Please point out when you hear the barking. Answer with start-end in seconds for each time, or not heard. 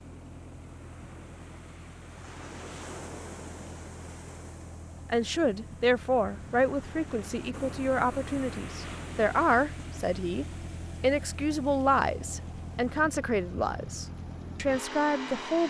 not heard.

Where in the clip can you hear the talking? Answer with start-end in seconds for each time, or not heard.
5.0-15.6.